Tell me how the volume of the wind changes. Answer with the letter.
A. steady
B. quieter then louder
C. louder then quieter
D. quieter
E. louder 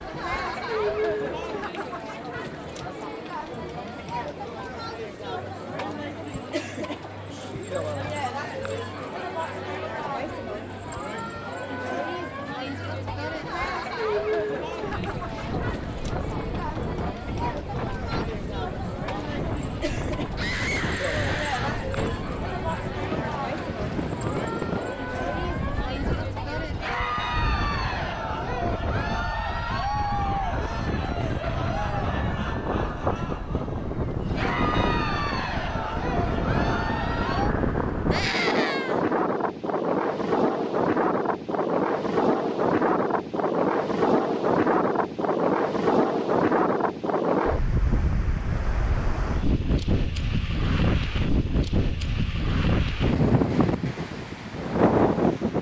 E.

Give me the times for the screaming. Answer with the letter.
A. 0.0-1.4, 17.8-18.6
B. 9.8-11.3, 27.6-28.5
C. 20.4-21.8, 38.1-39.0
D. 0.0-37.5
C.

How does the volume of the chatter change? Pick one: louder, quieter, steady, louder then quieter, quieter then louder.
steady.